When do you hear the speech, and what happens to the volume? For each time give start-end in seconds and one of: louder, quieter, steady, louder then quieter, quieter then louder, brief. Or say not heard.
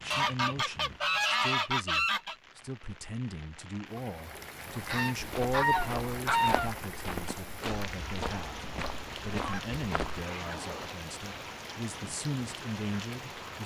0.0-13.6 steady.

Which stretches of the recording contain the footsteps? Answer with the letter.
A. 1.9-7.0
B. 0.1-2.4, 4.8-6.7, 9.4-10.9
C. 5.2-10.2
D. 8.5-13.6
C.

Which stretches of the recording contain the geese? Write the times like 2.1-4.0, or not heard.
0.1-2.4, 4.8-6.7, 9.4-10.9.